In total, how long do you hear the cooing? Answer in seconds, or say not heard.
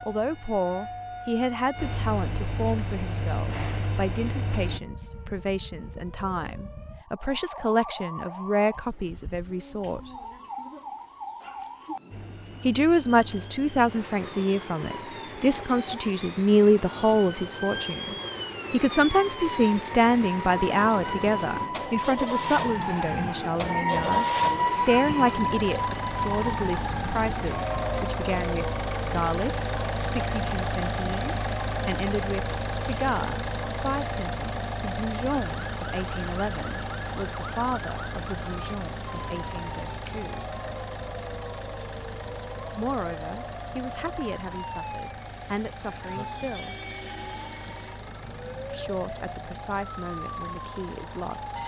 not heard.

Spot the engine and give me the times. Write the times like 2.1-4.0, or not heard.
0.0-4.8, 12.1-51.6.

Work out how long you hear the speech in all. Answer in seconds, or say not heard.
45 s.